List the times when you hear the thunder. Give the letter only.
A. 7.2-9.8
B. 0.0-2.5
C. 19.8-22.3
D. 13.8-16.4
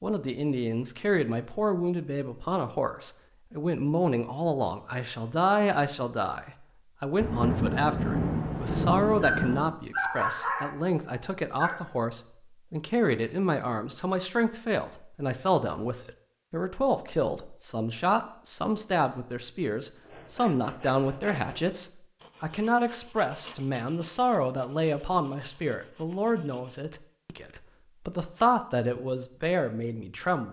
A.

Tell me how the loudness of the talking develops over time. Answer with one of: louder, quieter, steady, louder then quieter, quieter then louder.
steady.